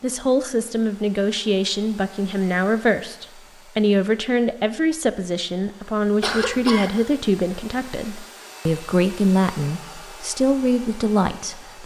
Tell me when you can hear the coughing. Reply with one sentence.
The coughing can be heard from 6.2 to 7.2 s.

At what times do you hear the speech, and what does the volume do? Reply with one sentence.
The speech can be heard from 0.0 to 11.8 s, at a steady volume.